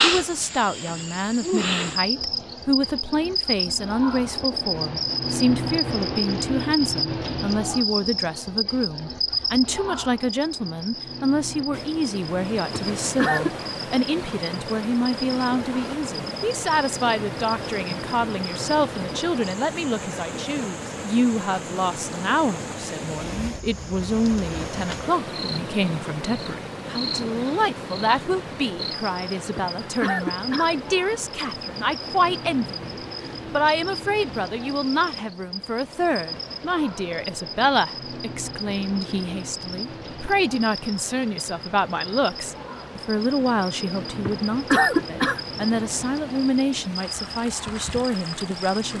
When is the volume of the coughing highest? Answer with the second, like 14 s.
45 s.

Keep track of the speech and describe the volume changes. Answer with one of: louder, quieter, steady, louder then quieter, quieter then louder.
steady.